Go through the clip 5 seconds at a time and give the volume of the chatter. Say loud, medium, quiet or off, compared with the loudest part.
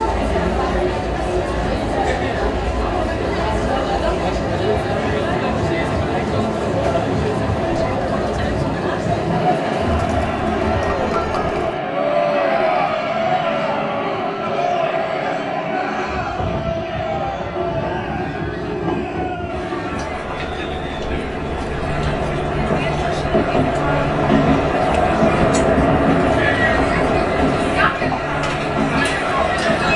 loud, loud, loud, medium, medium, loud.